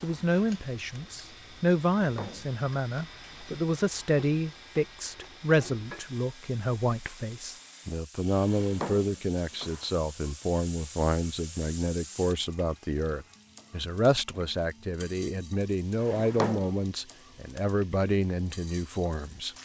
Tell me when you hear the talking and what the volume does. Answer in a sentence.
The talking can be heard from 0.0 to 19.5 s, at a steady volume.